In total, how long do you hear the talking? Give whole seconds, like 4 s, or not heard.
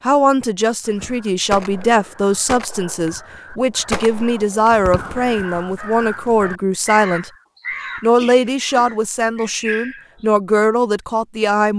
11 s.